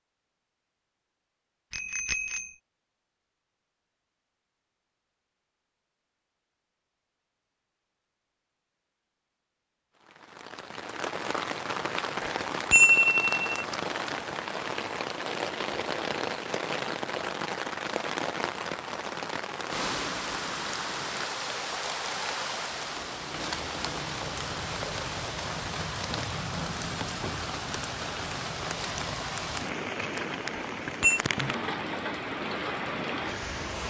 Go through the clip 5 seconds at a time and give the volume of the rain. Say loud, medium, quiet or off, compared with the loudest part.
off, off, loud, loud, loud, loud, loud.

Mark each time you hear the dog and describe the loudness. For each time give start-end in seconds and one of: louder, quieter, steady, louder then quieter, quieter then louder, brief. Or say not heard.
not heard.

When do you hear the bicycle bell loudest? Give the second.
13 s.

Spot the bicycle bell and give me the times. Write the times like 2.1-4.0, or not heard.
1.7-2.5, 12.2-13.7, 30.5-31.2.